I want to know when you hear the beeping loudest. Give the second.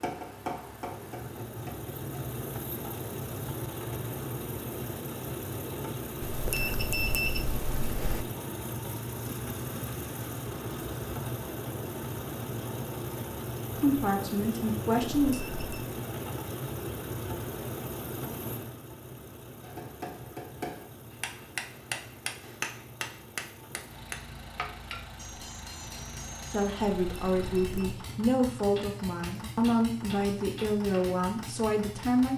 7 s.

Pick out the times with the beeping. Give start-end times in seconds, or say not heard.
6.2-8.2, 15.2-15.9, 27.1-28.1.